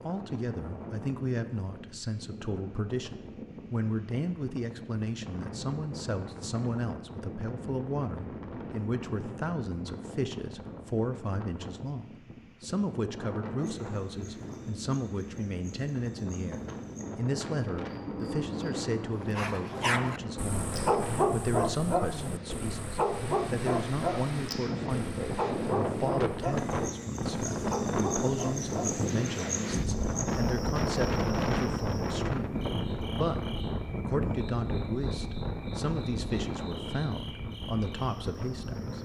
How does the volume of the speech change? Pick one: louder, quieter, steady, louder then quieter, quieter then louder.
steady.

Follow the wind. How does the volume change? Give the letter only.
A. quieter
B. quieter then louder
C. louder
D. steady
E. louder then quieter
C.